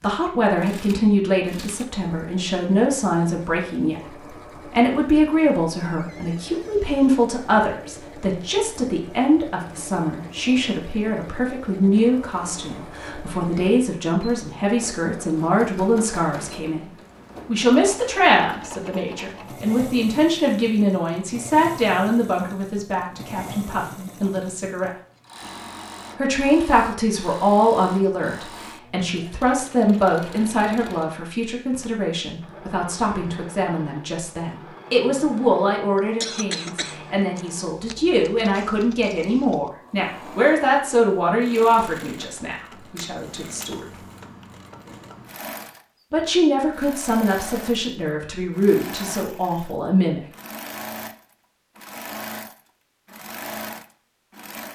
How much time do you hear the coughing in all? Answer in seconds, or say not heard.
2 s.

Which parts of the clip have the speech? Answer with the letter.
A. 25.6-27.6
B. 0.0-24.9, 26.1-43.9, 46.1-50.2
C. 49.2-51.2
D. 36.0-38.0
B.